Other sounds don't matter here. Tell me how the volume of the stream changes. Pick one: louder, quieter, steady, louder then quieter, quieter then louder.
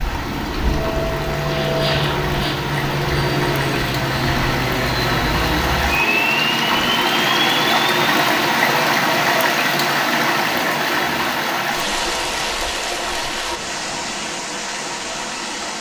louder then quieter.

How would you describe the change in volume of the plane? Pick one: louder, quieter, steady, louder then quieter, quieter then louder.
steady.